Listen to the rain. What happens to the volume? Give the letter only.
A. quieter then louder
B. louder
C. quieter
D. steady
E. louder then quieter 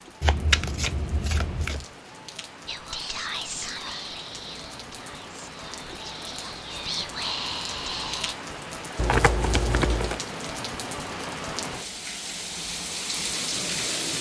B.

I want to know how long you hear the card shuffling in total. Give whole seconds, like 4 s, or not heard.
3 s.